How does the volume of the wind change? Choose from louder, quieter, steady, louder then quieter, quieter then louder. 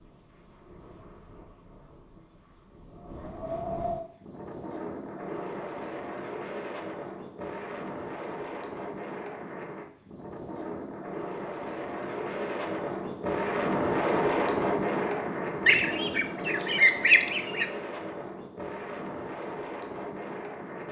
louder then quieter.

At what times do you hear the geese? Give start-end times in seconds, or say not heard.
15.7-17.6.